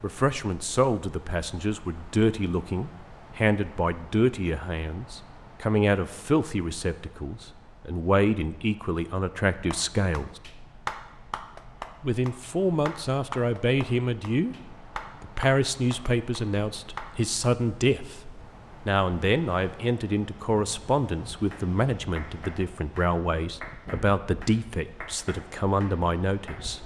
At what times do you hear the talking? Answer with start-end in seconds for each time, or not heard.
0.0-10.4, 12.0-14.6, 15.2-18.1, 18.9-26.8.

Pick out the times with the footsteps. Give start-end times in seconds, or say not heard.
not heard.